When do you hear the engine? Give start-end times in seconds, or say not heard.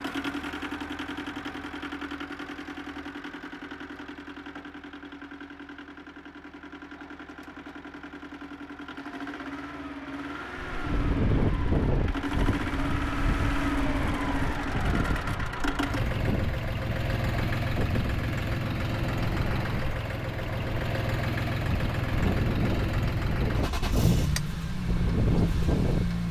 0.0-26.2.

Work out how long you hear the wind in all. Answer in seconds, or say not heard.
16 s.